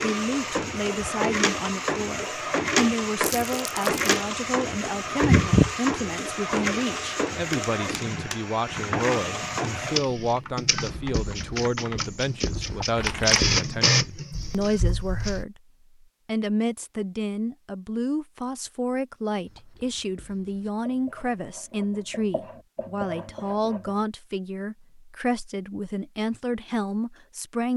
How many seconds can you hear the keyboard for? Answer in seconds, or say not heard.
8 s.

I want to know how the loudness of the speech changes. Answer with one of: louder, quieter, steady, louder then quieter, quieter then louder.
steady.